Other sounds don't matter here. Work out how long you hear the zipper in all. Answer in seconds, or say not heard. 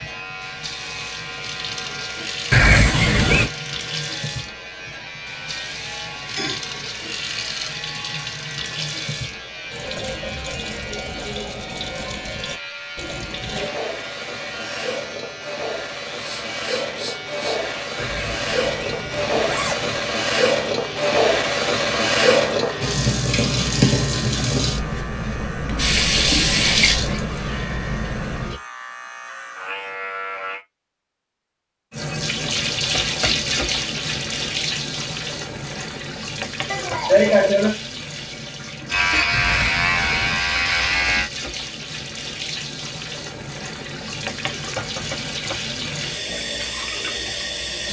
4 s.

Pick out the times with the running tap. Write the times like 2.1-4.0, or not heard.
0.0-28.6, 31.9-47.8.